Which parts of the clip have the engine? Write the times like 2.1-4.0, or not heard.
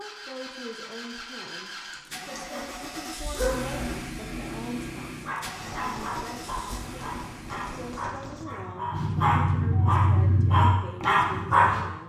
0.0-8.0.